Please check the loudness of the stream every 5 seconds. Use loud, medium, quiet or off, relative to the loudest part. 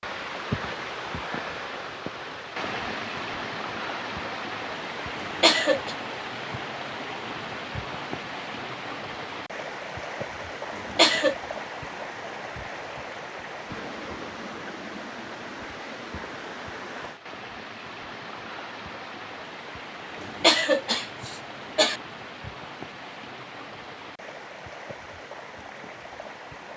loud, loud, loud, medium, medium, medium.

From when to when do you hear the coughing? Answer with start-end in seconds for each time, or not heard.
5.2-6.0, 10.8-11.3, 20.2-22.0.